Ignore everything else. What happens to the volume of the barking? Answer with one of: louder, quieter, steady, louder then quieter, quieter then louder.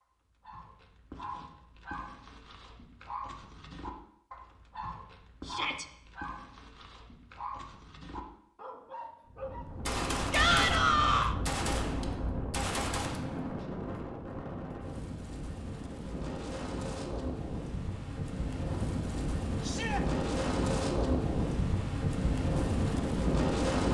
steady.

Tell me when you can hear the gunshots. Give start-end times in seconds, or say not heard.
9.7-13.5.